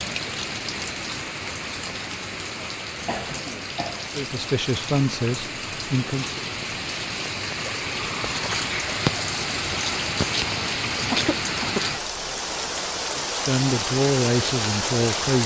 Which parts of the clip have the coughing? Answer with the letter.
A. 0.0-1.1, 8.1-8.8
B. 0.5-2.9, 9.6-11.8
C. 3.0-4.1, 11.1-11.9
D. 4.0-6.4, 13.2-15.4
C.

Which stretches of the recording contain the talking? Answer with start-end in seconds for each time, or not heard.
4.0-6.4, 13.2-15.4.